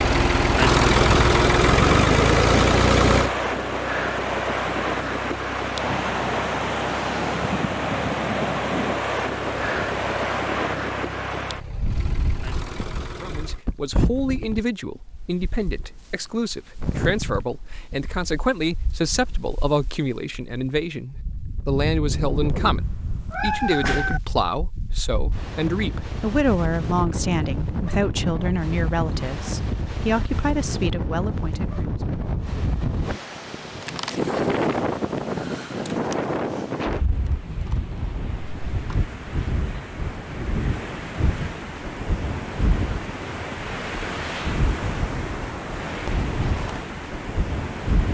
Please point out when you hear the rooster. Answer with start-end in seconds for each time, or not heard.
not heard.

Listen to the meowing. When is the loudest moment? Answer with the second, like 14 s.
24 s.